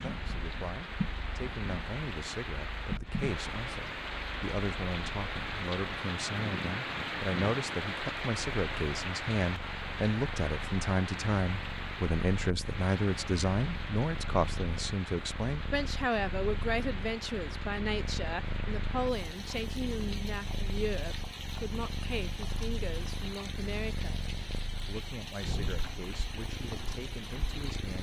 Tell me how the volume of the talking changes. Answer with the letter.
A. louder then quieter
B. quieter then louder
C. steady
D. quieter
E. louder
A.